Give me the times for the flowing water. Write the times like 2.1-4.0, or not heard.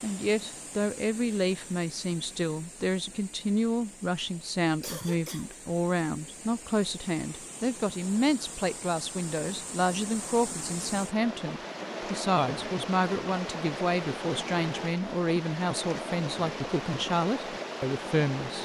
0.0-18.6.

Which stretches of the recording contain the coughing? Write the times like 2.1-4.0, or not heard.
4.8-5.5.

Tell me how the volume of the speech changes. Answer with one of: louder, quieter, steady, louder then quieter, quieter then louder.
steady.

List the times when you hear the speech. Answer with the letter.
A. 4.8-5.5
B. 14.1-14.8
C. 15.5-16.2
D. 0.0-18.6
D.